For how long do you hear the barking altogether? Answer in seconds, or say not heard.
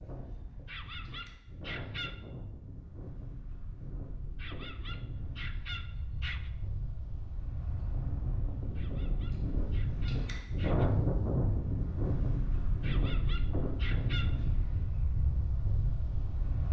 7 s.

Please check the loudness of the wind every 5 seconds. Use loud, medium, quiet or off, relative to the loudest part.
quiet, medium, loud, medium.